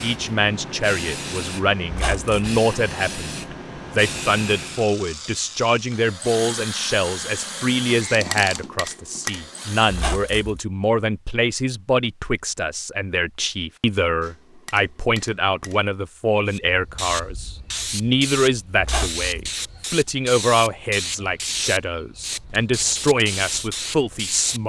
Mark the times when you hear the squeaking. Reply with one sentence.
The squeaking can be heard from 1.9 to 2.5 s, from 9.8 to 10.6 s and from 18.8 to 19.2 s.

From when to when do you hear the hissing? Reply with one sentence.
You can hear the hissing from 0.0 to 5.0 s and from 16.4 to 24.6 s.